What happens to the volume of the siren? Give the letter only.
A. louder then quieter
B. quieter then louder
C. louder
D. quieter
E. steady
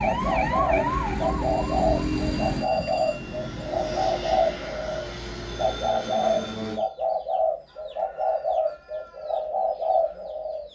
D.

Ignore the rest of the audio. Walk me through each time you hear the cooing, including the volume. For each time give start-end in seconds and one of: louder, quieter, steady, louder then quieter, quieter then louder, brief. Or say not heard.
0.0-10.6 steady.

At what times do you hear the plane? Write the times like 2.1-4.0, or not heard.
2.7-6.8.